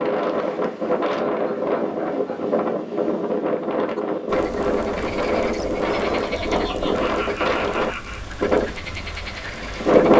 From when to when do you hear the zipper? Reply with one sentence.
You can't hear the zipper here.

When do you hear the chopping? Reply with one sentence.
You can't hear the chopping here.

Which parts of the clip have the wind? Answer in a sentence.
You can hear the wind from 0.0 to 10.1 s.